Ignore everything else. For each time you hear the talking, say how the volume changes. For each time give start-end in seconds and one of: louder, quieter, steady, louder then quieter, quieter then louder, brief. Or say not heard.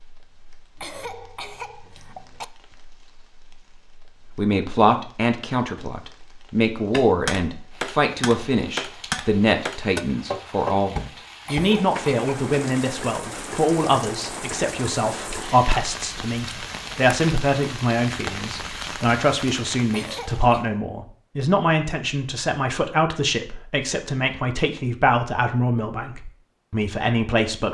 4.3-27.6 steady.